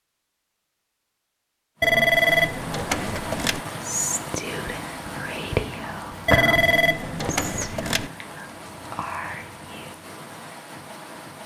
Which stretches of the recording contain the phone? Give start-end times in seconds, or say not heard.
1.8-3.6, 6.2-8.1.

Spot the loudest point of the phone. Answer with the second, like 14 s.
2 s.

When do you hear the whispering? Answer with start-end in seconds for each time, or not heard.
3.8-10.1.